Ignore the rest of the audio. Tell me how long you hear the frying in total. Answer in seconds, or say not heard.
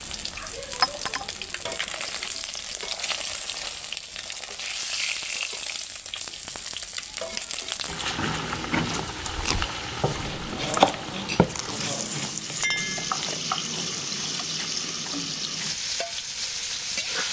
17 s.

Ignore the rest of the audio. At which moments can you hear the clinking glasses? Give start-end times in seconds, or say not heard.
0.8-1.2, 12.6-13.1.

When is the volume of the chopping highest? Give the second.
11 s.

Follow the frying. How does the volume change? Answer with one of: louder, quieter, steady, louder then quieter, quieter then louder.
steady.